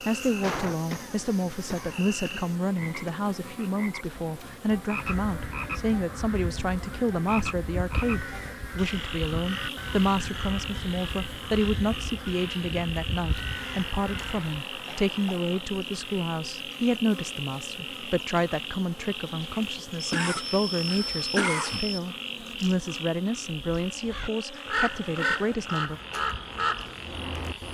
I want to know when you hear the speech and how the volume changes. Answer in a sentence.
You can hear the speech from 0.1 to 26.0 s, at a steady volume.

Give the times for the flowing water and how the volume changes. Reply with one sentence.
The flowing water can't be heard in this clip.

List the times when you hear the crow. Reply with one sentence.
The crow can be heard from 4.9 to 14.6 s and from 24.1 to 27.6 s.